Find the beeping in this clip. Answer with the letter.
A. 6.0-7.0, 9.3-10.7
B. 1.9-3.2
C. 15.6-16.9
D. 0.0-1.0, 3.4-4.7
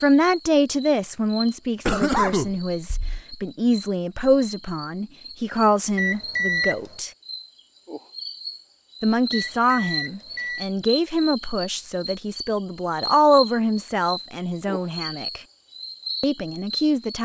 A.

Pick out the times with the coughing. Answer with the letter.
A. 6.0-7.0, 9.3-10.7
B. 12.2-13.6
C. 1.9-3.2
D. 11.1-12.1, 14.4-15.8
C.